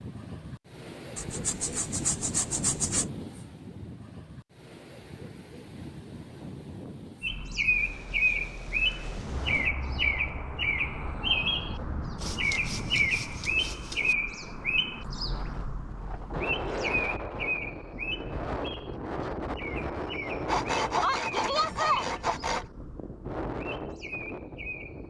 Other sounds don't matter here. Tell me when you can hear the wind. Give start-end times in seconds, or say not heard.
0.0-25.0.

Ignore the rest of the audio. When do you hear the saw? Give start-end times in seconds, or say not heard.
1.1-3.1, 12.2-14.2, 20.4-22.6.